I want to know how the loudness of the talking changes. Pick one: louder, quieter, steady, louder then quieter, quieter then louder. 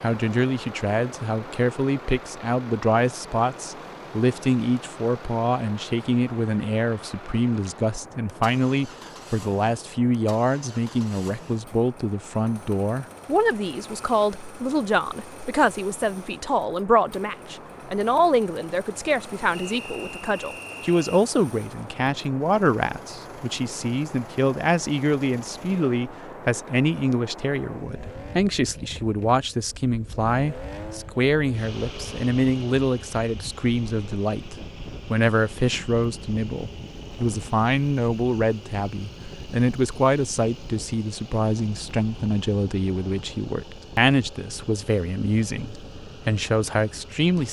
steady.